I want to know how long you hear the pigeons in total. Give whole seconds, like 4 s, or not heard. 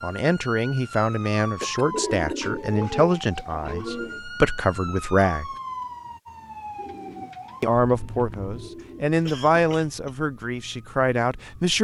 5 s.